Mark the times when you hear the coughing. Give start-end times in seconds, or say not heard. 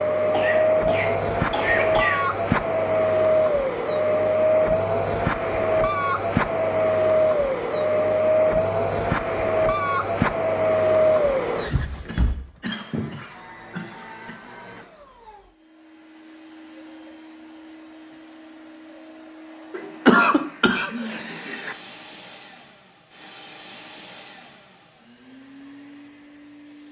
0.3-2.2, 11.7-14.3, 19.7-21.8.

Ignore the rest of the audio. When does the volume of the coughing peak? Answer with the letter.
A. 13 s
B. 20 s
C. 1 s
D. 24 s
B.